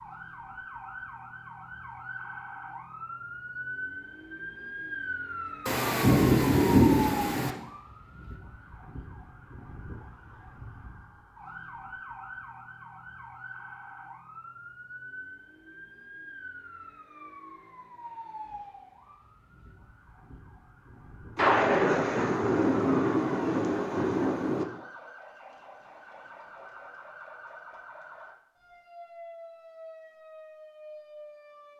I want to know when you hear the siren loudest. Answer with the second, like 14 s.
5 s.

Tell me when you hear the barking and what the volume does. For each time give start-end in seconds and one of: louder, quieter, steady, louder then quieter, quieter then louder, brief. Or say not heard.
not heard.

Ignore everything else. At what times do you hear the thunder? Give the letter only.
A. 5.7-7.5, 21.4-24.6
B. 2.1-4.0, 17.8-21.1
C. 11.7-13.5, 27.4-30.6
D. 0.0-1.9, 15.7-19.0
A.